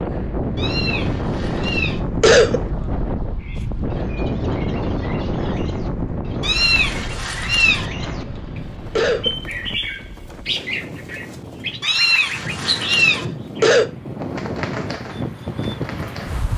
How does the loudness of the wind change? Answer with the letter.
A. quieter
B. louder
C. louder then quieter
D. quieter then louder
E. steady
D.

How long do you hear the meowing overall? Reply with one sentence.
The meowing can be heard for 4 seconds in total.